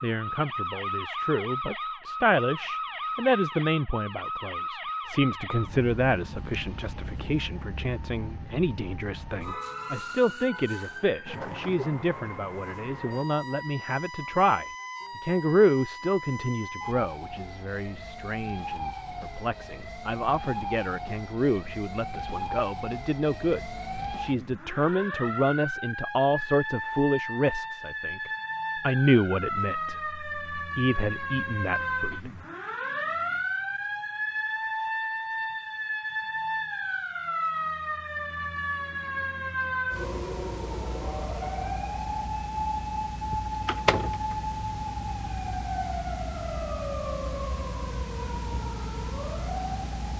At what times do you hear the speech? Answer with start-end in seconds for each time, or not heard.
0.0-32.3.